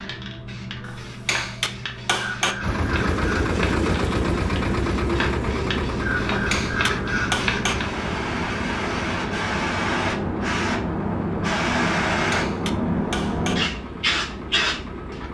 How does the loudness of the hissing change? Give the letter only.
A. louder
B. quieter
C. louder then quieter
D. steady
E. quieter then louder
A.